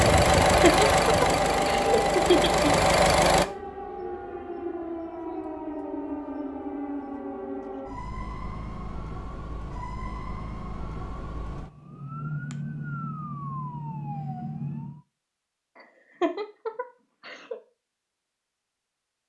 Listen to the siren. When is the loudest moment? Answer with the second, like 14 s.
2 s.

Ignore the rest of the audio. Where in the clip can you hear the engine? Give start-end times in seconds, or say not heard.
0.0-3.5.